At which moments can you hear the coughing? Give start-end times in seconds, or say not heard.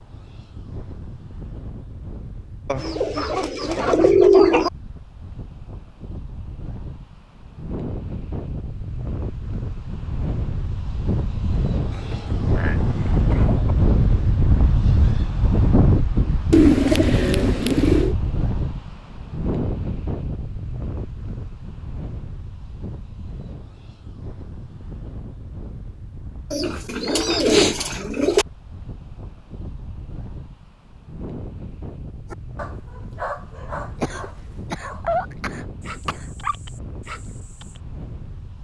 11.9-13.8, 34.0-36.5.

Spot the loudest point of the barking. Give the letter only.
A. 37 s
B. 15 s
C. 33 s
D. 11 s
C.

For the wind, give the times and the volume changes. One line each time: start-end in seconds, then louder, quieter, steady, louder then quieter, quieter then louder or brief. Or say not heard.
0.0-38.5 louder then quieter.